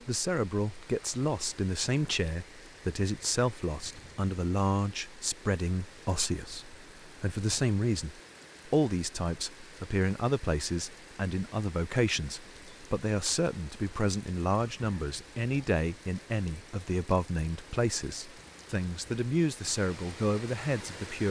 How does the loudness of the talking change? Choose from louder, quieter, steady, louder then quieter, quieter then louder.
steady.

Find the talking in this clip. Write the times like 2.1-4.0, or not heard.
0.1-21.2.